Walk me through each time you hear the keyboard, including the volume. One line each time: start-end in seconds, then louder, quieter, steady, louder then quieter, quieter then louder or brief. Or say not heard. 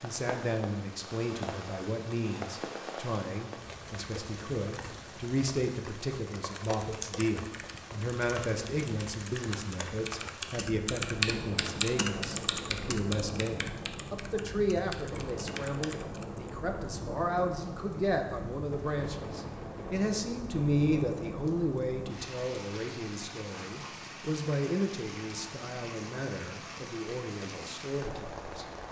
6.3-16.5 louder then quieter.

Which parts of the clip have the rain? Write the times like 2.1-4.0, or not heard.
0.0-28.8.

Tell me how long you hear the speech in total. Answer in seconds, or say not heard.
29 s.